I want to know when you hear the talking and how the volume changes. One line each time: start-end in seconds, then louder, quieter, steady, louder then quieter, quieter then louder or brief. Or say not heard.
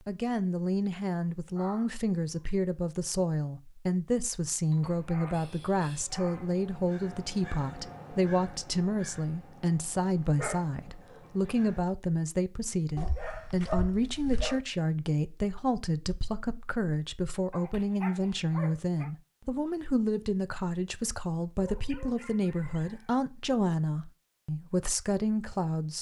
0.1-25.9 steady.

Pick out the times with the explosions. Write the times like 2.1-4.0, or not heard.
not heard.